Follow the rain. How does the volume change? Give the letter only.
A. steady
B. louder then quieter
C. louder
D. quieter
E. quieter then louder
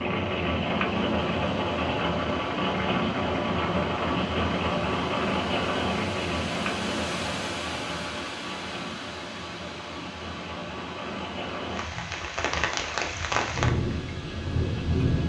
E.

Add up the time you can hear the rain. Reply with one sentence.
The rain can be heard for 15 seconds in total.